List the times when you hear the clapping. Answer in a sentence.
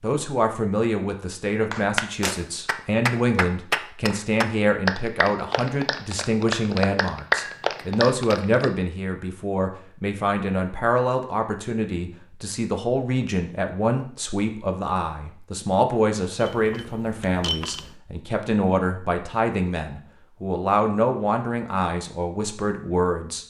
The clapping can be heard from 1.7 to 8.7 s.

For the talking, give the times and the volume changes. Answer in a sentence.
The talking can be heard from 0.0 to 23.4 s, at a steady volume.